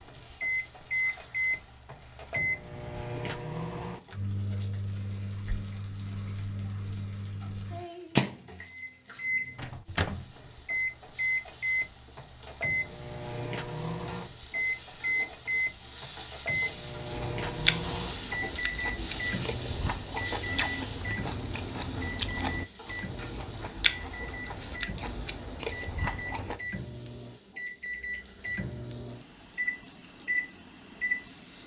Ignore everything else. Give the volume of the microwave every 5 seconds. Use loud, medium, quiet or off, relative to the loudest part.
loud, loud, loud, loud, medium, medium, loud.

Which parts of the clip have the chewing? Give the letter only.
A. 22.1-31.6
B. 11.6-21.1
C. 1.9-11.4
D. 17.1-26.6
D.